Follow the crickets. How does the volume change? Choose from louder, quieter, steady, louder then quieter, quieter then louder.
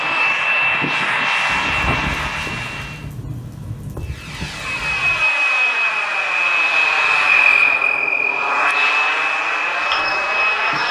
louder then quieter.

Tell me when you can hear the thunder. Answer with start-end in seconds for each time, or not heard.
1.5-5.2.